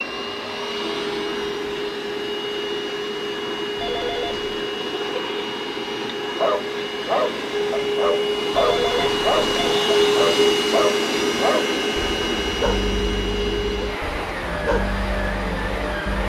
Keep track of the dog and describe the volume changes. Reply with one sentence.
The loudness of the dog goes down.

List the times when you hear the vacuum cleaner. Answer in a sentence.
The vacuum cleaner can be heard from 0.0 to 16.2 s.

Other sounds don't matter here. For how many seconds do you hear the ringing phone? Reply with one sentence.
You can hear the ringing phone for 2 seconds altogether.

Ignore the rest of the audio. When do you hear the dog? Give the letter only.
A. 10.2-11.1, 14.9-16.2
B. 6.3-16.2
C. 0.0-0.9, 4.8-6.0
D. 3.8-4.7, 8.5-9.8
B.